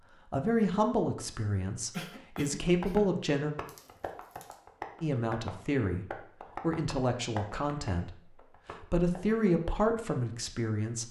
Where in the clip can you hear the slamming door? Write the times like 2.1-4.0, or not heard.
not heard.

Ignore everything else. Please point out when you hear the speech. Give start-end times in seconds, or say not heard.
0.3-3.5, 5.0-11.0.